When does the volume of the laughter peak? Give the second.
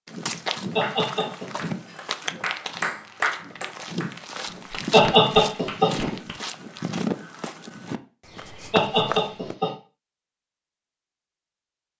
5 s.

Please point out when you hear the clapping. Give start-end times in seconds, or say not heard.
0.8-6.3.